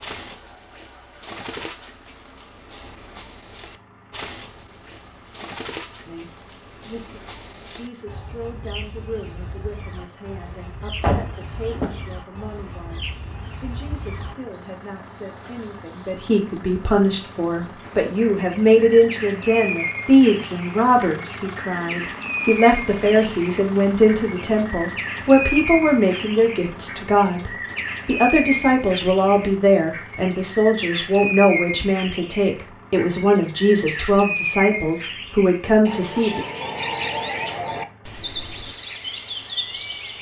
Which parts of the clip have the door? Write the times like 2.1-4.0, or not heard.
11.0-12.1.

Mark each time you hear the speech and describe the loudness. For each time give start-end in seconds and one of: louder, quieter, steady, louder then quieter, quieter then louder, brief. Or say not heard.
6.0-36.4 louder.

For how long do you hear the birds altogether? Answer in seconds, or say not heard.
40 s.